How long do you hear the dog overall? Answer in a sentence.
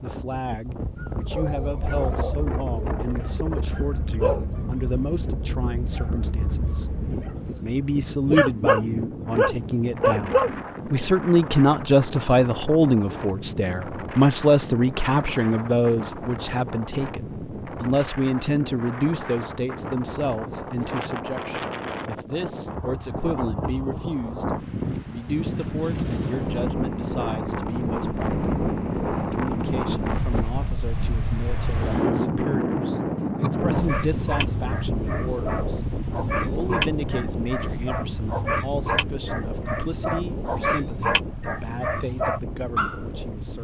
You can hear the dog for 20 seconds altogether.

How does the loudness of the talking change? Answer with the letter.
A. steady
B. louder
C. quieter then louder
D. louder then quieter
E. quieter
D.